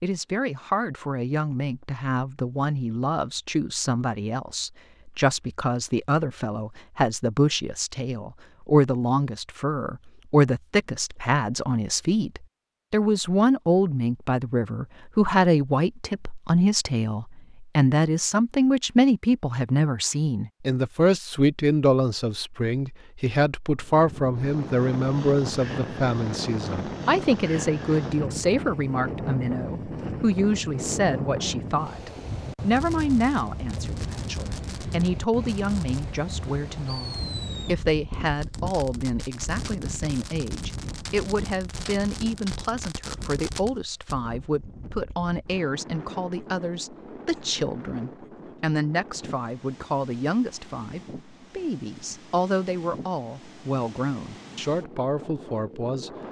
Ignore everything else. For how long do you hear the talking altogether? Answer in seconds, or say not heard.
56 s.